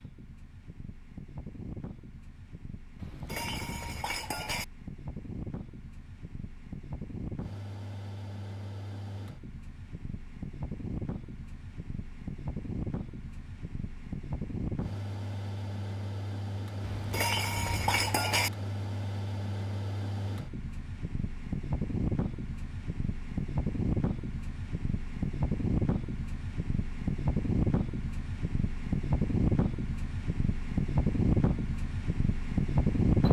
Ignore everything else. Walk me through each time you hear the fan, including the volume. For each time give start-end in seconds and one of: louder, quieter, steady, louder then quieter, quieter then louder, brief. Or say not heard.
0.0-33.2 louder.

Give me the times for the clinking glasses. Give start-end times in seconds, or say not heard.
3.0-4.7, 16.8-18.5.